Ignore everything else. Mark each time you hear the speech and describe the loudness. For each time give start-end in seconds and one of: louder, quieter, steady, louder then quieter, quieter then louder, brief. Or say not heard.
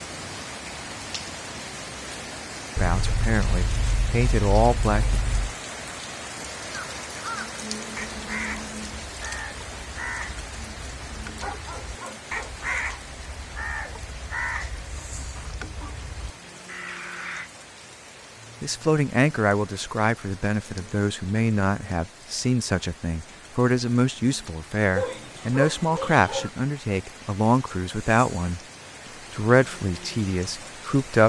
2.8-5.2 brief
18.6-28.6 steady
29.3-31.2 brief.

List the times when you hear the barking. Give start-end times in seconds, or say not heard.
2.8-5.5, 11.4-12.8, 24.9-26.5.